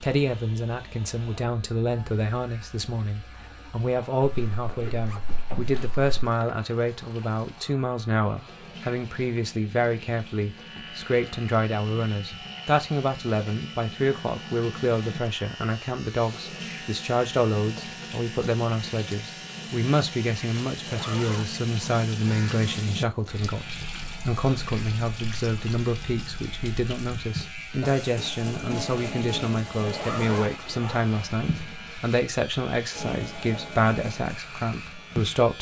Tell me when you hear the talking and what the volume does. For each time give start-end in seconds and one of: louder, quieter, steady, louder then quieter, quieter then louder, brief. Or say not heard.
0.0-35.5 steady.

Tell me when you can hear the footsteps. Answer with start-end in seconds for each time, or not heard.
not heard.